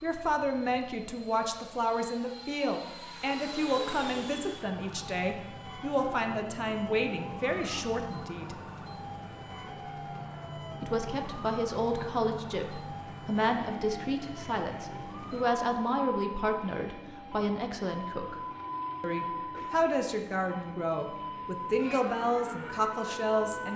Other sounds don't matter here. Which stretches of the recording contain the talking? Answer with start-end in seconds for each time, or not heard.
0.0-8.6, 10.8-18.4, 19.0-23.7.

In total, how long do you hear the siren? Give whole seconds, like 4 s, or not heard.
24 s.